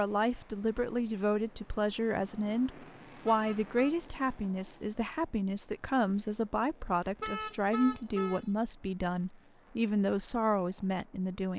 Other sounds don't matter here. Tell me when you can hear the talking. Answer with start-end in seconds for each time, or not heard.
0.0-11.5.